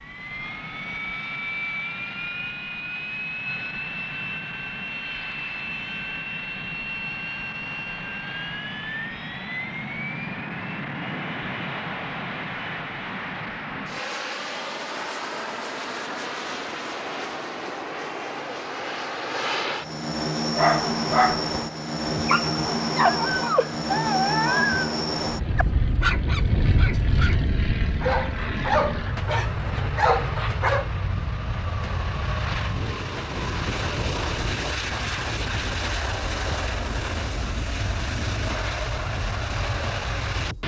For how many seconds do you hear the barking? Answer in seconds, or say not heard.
10 s.